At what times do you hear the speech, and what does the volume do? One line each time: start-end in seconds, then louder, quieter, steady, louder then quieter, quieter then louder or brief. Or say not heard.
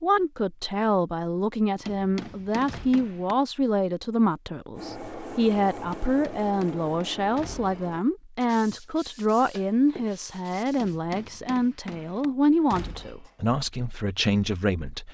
0.0-15.0 steady.